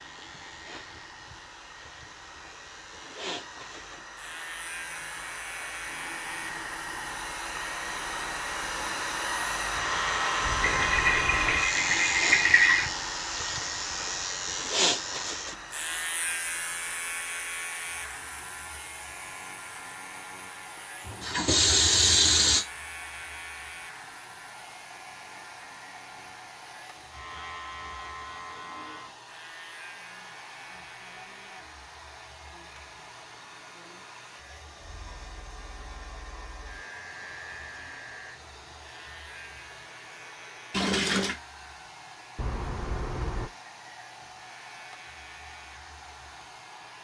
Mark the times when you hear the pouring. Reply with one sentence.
You can hear the pouring from 10.6 to 12.9 s, from 21.1 to 22.6 s and from 40.7 to 41.4 s.